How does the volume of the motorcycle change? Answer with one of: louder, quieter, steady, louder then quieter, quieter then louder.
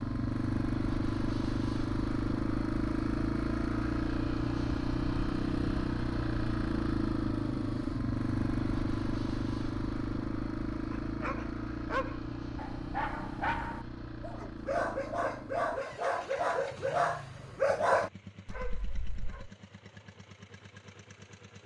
quieter.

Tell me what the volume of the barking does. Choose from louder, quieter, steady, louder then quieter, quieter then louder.
louder.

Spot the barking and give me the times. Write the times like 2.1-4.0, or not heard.
10.9-19.5.